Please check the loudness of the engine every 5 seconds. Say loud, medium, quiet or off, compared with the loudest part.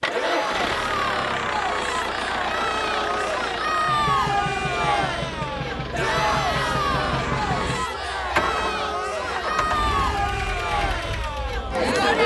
loud, loud, medium.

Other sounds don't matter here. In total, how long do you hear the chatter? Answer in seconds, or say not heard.
12 s.